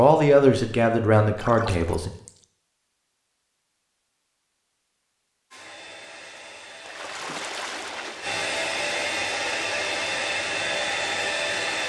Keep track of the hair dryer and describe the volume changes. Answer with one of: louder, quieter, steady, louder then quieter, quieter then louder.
louder.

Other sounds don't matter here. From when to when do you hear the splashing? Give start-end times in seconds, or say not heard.
1.4-2.5, 6.8-8.4.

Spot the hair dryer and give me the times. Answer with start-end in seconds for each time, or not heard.
5.5-11.8.